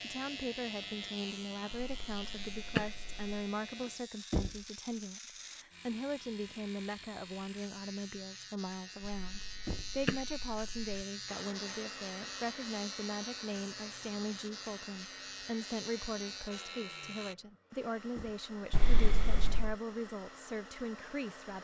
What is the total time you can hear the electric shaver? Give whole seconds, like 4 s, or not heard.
17 s.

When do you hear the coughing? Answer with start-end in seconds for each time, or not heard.
1.7-3.2, 9.1-11.0, 18.7-19.8.